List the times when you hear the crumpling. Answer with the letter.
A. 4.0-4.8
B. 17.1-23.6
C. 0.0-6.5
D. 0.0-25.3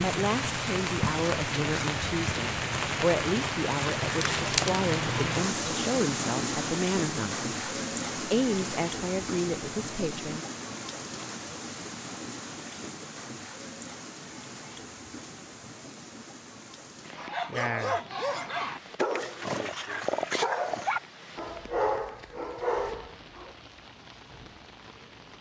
A.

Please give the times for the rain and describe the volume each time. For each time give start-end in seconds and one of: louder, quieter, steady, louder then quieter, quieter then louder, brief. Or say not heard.
0.0-25.3 quieter.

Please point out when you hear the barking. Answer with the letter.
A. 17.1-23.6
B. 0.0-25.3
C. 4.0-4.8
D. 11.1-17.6
A.